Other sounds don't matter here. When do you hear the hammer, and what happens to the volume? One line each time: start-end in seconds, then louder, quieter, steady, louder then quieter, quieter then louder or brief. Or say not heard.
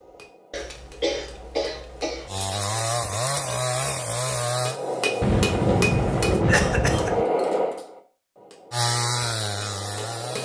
0.0-10.4 louder then quieter.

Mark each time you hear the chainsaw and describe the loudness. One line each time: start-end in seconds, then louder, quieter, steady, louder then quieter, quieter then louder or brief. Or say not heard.
2.2-6.4 quieter
8.7-10.4 brief.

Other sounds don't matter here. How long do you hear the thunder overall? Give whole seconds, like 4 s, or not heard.
2 s.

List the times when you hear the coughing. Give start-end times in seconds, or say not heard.
0.5-2.3, 6.5-7.1.